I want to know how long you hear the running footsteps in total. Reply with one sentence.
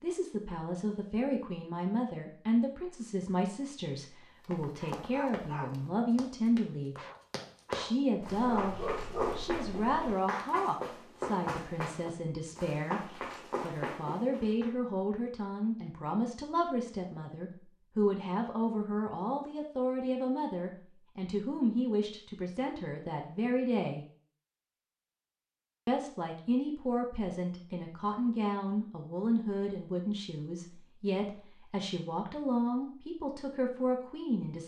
The running footsteps can be heard for 10 seconds in total.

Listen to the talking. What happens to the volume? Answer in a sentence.
The volume of the talking stays about the same.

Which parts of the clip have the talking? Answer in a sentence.
The talking can be heard from 0.0 to 7.0 s, from 7.7 to 24.1 s and from 25.9 to 34.6 s.